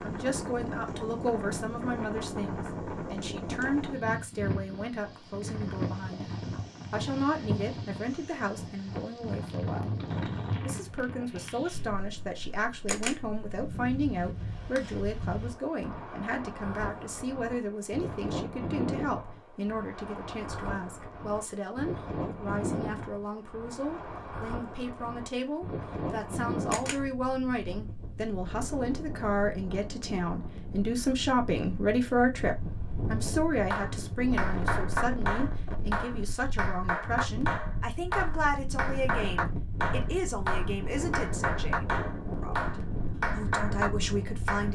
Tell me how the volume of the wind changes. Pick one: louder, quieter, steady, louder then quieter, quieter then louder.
steady.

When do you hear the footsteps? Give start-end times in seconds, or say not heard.
not heard.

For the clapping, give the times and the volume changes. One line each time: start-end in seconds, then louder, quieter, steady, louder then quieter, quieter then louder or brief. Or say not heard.
33.7-44.7 steady.